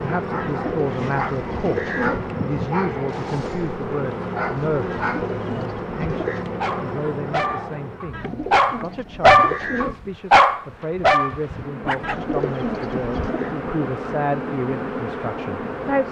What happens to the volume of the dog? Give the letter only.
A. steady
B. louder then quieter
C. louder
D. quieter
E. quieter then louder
C.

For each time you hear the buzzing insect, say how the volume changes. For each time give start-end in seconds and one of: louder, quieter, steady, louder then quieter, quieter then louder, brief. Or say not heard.
0.0-16.0 quieter then louder.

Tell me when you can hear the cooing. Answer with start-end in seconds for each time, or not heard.
0.4-2.3, 4.8-6.5, 8.1-10.0, 12.0-13.5.